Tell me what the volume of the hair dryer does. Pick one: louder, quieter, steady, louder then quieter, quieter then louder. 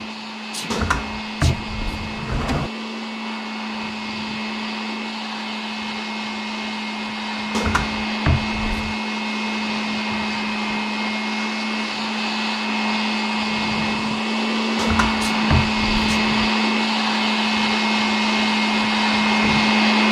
louder.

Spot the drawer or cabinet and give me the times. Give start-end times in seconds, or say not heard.
0.7-2.7, 7.5-8.9, 14.8-16.5.